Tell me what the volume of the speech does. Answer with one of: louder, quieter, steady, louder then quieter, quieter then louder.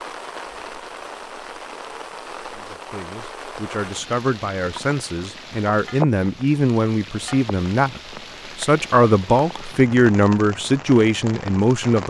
louder.